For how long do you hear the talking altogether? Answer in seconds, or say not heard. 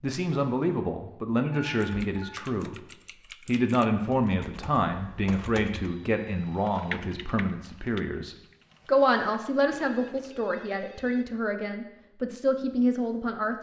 13 s.